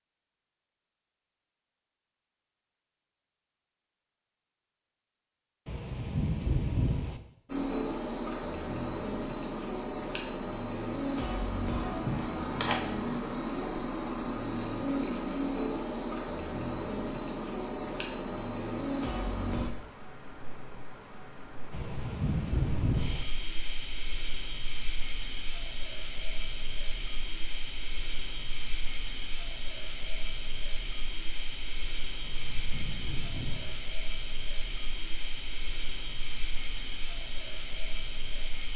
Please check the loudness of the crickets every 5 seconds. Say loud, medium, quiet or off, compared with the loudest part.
off, loud, loud, loud, medium, medium, medium, medium.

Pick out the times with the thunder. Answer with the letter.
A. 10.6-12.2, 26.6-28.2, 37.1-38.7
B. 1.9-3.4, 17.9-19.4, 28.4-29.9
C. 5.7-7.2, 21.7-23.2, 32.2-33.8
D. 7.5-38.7
C.